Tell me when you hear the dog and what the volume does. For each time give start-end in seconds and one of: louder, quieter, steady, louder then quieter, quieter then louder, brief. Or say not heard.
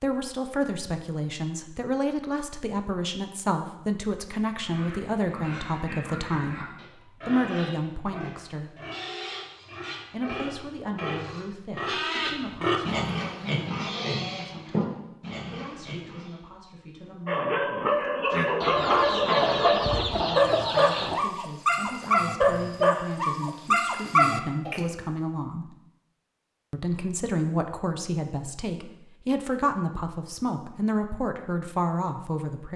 17.2-24.9 steady.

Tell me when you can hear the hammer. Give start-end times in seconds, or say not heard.
not heard.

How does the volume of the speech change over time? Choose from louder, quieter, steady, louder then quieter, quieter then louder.
quieter then louder.